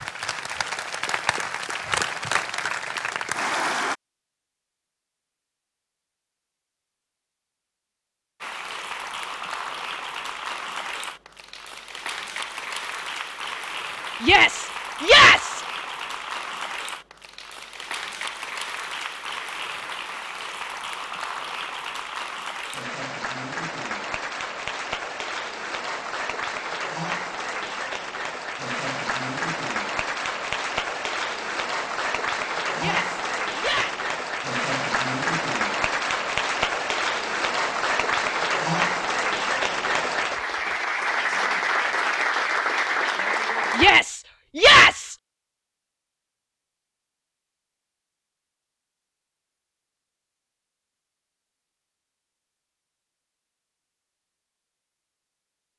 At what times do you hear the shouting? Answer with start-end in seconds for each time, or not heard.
14.2-15.6, 32.8-34.0, 43.8-45.1.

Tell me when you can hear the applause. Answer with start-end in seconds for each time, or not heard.
0.0-4.0, 8.4-43.9.